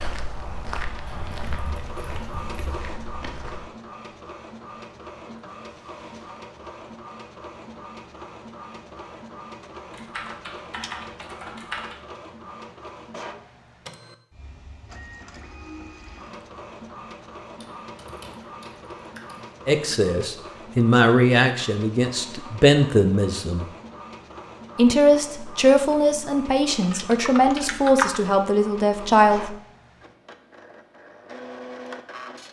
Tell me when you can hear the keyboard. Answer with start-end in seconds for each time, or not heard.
1.1-3.0, 9.9-11.9, 17.6-19.4, 26.8-28.2.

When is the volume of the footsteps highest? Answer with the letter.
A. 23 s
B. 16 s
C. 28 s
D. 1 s
D.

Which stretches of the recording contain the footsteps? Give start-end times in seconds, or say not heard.
0.0-3.7.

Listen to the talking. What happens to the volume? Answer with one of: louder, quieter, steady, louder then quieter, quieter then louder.
steady.